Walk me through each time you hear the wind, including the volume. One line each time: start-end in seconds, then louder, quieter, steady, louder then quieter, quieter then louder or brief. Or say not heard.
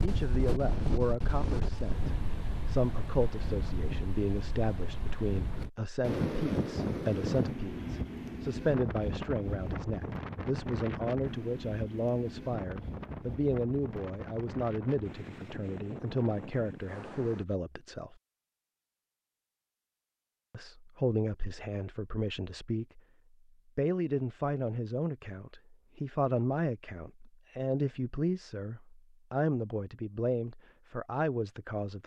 0.0-17.4 quieter.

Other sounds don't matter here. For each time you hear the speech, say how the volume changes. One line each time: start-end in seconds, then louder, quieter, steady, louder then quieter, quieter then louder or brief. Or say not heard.
0.0-18.1 steady
20.5-23.0 brief
23.8-32.0 steady.